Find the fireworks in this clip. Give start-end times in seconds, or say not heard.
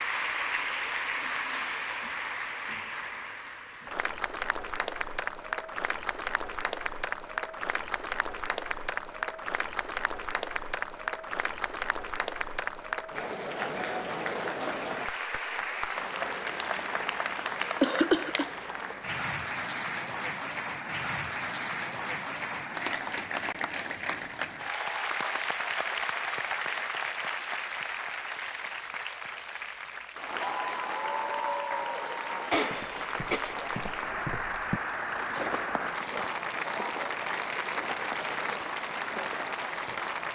not heard.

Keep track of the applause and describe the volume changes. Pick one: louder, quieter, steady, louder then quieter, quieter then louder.
steady.